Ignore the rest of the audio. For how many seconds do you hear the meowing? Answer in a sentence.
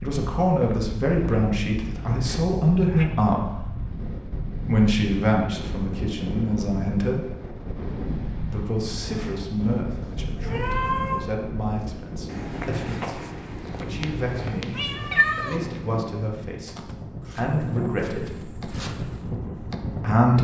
The meowing can be heard for 3 seconds in total.